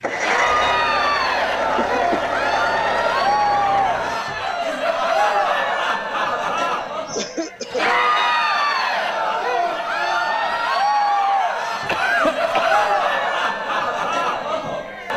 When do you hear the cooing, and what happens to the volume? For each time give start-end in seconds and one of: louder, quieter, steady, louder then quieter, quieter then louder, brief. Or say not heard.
not heard.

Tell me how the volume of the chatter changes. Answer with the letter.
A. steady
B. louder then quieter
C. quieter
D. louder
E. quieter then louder
A.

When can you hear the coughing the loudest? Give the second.
12 s.